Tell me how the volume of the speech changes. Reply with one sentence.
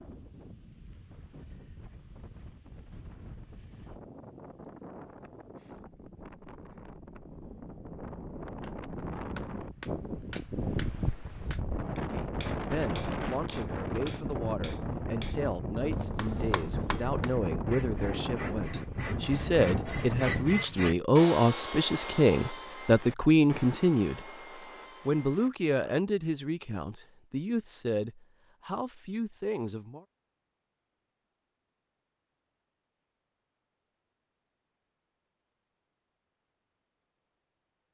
The volume of the speech goes up, then down.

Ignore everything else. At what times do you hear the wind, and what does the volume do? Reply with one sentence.
The wind can be heard from 0.0 to 20.6 s, getting louder.